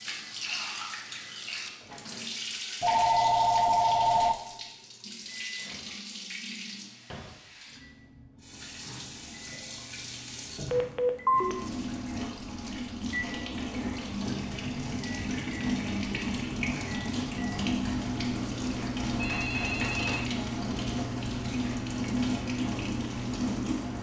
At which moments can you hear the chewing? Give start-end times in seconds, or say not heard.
not heard.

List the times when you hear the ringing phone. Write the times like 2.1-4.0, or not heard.
2.8-4.3, 10.7-11.6, 18.8-20.2.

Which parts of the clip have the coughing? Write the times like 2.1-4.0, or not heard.
not heard.